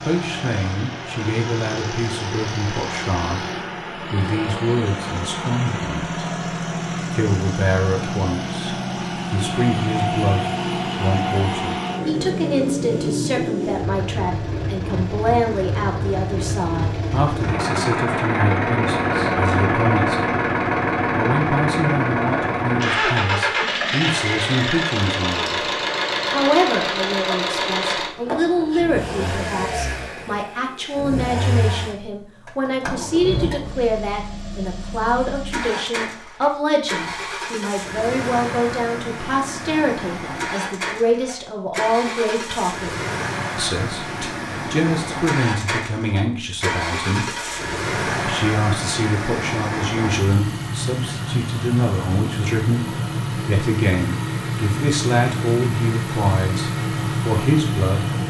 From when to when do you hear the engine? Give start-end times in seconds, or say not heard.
0.0-58.2.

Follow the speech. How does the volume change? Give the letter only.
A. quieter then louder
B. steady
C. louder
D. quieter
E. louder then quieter
B.